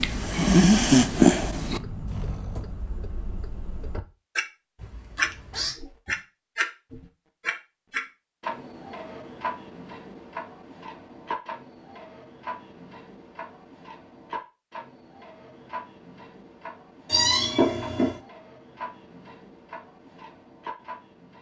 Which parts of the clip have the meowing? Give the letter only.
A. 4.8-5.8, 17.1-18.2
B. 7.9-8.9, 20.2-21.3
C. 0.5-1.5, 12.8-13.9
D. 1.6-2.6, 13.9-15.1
A.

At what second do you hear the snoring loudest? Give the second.
1 s.